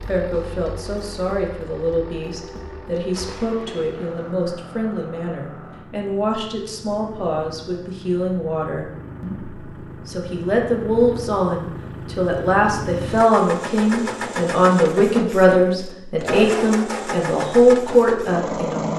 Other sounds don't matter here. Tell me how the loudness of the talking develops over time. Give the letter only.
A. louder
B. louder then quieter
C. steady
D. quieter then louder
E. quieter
A.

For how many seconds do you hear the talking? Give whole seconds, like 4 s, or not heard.
19 s.